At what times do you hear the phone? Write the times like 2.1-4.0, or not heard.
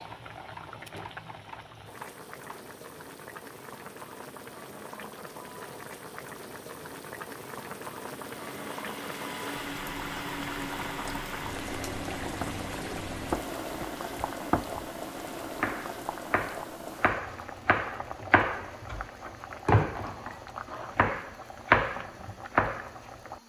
not heard.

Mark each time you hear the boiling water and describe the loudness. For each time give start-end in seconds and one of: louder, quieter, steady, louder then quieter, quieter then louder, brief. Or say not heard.
0.0-23.4 louder then quieter.